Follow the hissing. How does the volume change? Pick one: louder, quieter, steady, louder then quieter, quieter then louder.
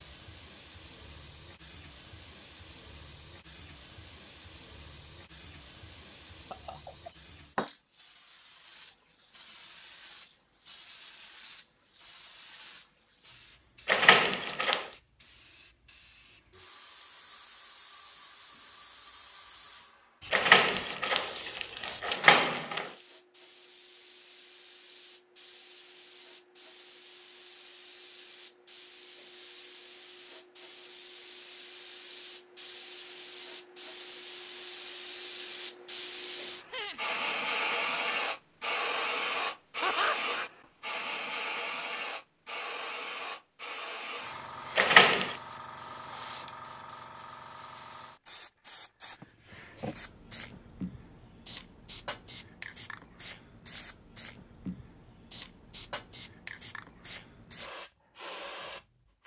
louder then quieter.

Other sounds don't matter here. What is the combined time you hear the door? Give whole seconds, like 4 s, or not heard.
4 s.